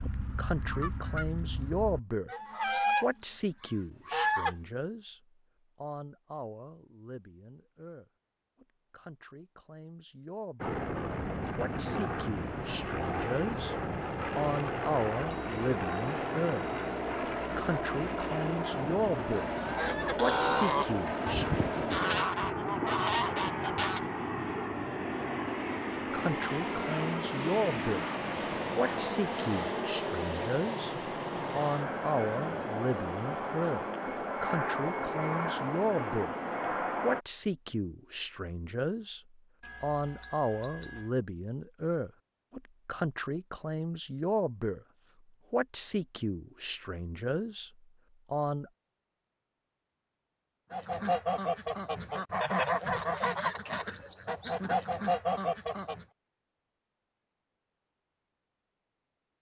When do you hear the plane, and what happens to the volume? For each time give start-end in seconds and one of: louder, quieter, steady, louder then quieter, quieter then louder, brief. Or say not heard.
10.6-37.2 steady.